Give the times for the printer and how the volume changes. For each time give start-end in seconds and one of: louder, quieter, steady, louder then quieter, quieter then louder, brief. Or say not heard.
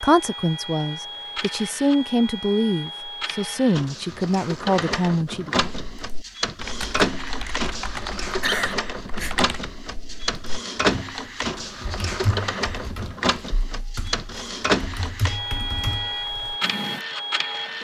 0.0-17.7 louder.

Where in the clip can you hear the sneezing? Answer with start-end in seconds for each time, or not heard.
8.3-9.3.